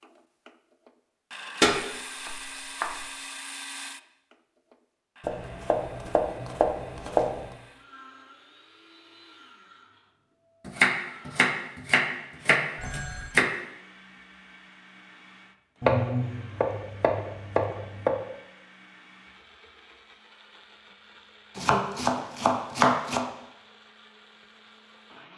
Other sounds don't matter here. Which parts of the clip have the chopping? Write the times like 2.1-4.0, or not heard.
1.6-3.0, 5.2-7.5, 10.7-13.5, 15.8-18.1, 21.6-23.2.